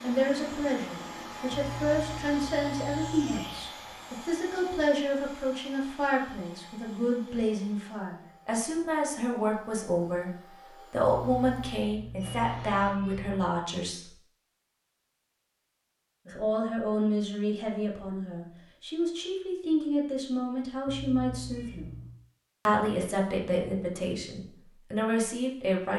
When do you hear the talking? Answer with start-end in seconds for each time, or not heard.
0.0-10.3, 10.9-14.1, 16.2-21.9, 22.6-25.9.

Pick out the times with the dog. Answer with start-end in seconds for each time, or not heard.
not heard.